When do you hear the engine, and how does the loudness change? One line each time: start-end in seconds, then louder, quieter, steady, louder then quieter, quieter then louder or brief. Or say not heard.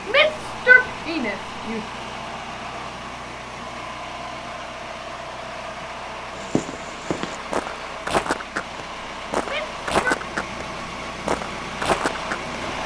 0.0-12.8 steady.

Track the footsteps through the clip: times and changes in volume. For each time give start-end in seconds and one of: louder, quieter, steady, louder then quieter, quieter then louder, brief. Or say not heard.
6.3-10.7 louder
11.2-12.6 brief.